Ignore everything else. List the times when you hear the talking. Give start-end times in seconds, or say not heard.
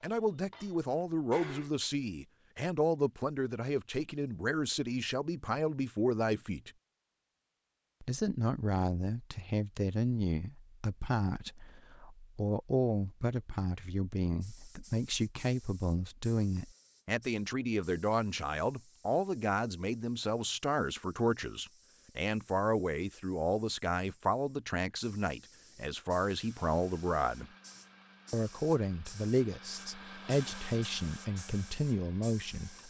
0.0-6.7, 8.0-27.5, 28.3-32.8.